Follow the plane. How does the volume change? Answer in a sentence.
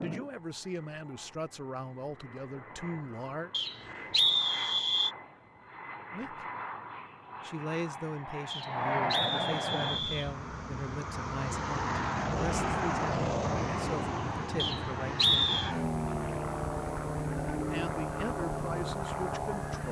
The loudness of the plane goes up.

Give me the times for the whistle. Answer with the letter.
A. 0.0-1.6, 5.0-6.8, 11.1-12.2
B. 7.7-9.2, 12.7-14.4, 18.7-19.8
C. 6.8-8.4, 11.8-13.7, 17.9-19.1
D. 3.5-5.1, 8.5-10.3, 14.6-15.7
D.